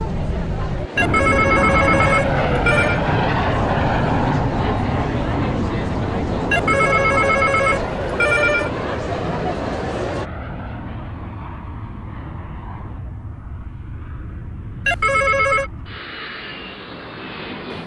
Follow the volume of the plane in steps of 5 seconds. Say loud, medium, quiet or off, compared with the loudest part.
loud, medium, quiet, quiet.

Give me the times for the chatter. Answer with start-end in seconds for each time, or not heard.
0.0-10.3.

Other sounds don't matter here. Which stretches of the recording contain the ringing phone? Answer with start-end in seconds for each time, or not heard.
0.9-3.0, 6.5-8.7, 14.8-15.7.